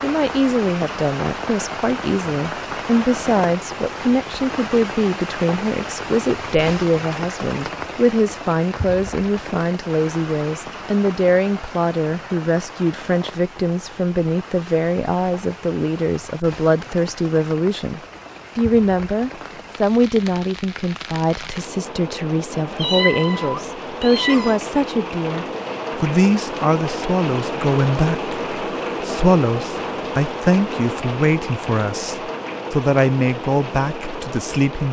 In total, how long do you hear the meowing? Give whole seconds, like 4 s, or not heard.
2 s.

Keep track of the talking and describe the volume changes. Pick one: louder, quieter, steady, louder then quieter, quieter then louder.
steady.